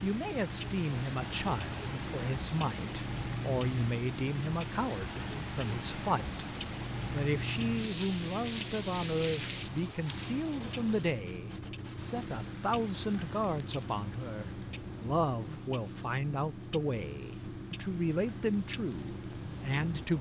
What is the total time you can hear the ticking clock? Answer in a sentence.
You can hear the ticking clock for 20 seconds altogether.